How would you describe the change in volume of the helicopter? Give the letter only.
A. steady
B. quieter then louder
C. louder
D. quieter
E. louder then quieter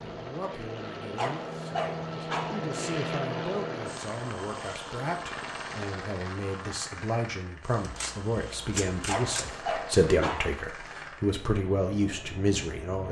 D.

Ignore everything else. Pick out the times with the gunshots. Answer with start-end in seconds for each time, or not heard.
7.8-9.6.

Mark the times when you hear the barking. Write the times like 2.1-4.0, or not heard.
1.1-2.6, 9.1-10.6.